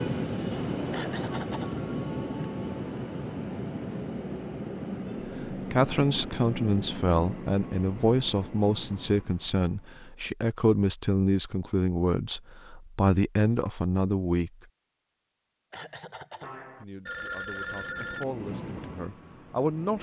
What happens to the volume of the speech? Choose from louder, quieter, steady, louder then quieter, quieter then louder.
quieter.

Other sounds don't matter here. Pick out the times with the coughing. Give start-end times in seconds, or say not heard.
0.9-1.8, 15.7-16.6.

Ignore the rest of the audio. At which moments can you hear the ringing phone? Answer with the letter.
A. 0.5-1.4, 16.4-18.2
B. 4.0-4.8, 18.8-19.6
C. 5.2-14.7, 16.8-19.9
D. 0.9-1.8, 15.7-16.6
A.